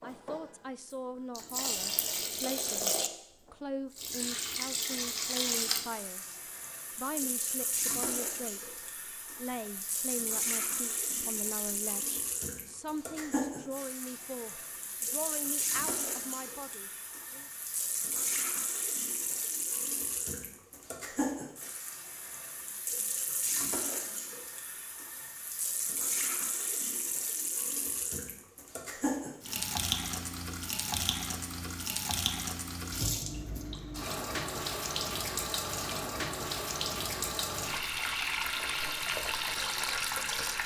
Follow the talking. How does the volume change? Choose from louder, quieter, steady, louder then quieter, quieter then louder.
steady.